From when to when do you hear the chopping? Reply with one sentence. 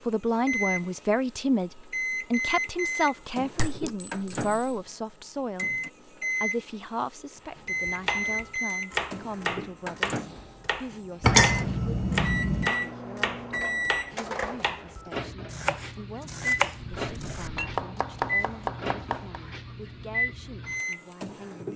You can hear the chopping from 7.5 to 19.4 s.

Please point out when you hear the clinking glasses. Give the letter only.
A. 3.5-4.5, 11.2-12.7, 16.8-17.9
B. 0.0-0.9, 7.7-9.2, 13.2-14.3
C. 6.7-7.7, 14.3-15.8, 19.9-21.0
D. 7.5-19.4
A.